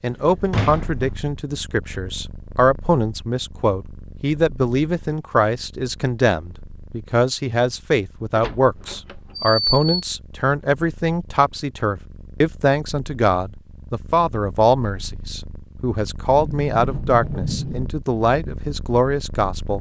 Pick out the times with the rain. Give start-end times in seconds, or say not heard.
not heard.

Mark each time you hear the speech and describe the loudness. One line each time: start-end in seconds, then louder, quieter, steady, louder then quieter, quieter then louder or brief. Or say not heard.
0.0-19.7 steady.